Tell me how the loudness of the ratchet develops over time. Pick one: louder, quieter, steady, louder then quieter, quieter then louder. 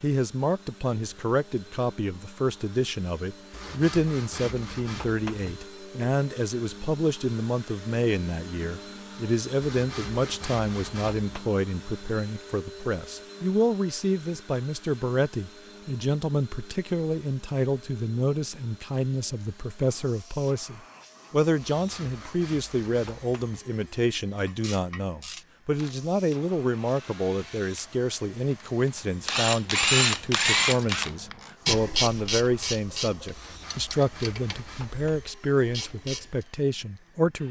louder then quieter.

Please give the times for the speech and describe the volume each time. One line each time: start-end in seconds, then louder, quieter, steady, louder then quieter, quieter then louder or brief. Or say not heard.
0.0-37.4 steady.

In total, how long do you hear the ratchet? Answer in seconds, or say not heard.
11 s.